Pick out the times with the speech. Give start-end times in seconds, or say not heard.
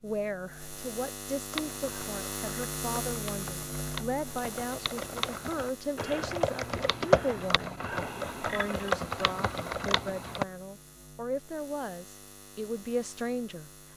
0.0-13.7.